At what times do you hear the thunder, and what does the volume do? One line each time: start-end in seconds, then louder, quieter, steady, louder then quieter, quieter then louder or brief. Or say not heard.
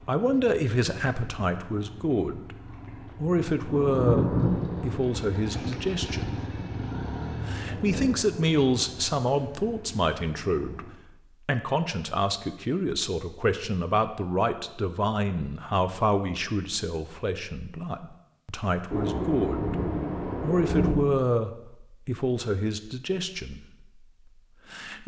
3.6-8.2 quieter
18.9-20.9 brief.